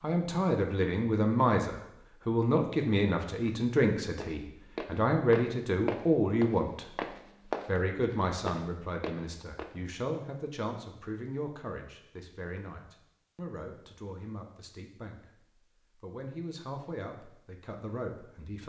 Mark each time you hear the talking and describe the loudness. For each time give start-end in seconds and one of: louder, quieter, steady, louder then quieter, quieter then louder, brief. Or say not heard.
0.0-18.6 quieter.